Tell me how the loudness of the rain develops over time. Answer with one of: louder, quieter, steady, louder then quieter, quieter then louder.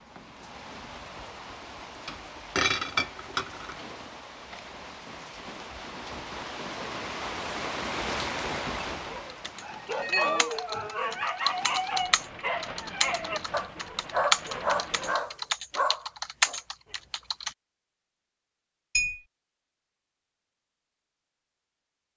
louder then quieter.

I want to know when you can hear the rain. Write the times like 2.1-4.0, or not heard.
0.0-15.2.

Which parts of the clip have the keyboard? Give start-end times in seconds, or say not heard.
9.2-17.5.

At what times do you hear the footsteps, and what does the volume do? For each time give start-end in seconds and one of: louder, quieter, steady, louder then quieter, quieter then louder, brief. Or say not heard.
not heard.